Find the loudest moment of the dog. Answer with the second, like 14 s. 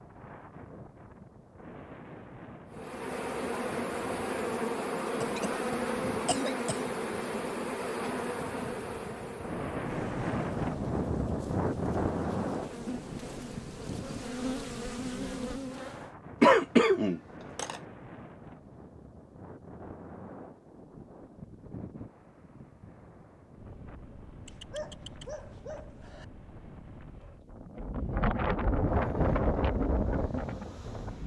25 s.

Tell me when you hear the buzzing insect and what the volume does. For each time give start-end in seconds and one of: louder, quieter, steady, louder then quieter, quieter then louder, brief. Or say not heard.
2.7-16.1 quieter then louder
28.9-31.2 brief.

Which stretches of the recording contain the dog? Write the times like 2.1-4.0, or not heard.
24.4-26.2.